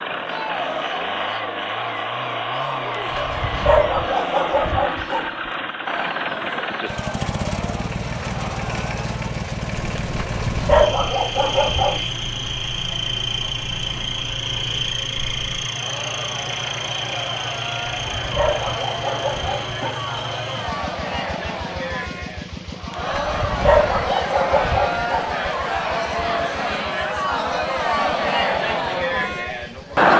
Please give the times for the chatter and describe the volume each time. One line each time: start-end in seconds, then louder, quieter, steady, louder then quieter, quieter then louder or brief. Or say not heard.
0.1-30.1 louder.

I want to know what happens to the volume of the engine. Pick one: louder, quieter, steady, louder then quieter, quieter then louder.
quieter.